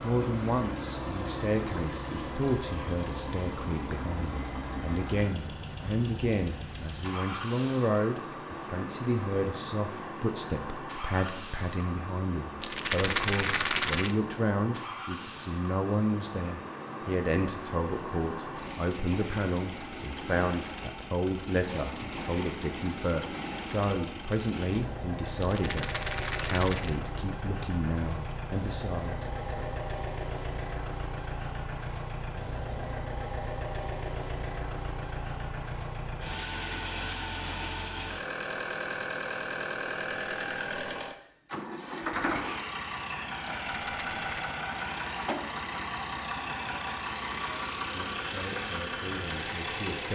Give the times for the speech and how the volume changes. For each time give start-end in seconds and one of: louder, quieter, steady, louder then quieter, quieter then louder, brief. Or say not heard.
0.0-29.6 steady
47.8-50.1 brief.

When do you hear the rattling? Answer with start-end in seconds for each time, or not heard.
12.6-14.1, 25.4-27.0, 43.6-44.6.